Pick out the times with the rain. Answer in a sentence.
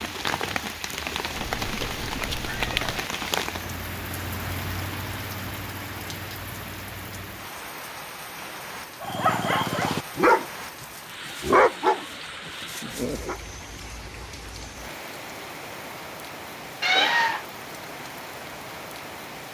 The rain can be heard from 0.0 to 19.4 s.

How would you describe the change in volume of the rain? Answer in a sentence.
The volume of the rain goes down.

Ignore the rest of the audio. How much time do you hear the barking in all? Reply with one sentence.
You can hear the barking for 4 seconds altogether.